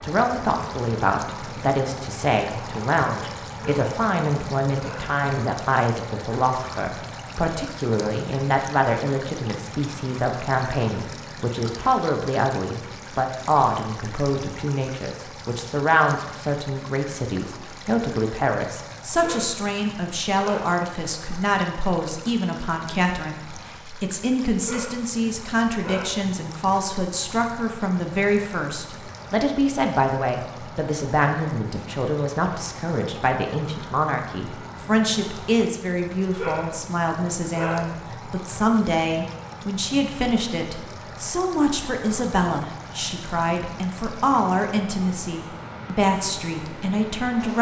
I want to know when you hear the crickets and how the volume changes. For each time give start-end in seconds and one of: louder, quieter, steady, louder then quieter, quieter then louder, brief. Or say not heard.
not heard.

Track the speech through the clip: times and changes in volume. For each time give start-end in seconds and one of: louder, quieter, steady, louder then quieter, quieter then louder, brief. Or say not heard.
0.0-47.5 steady.